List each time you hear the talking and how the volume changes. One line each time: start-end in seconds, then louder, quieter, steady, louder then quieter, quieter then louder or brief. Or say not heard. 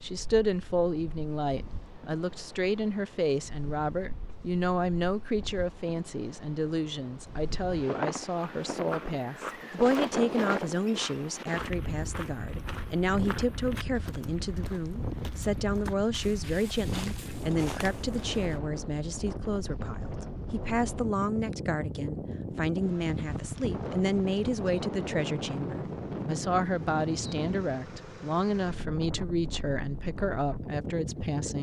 0.0-31.5 steady.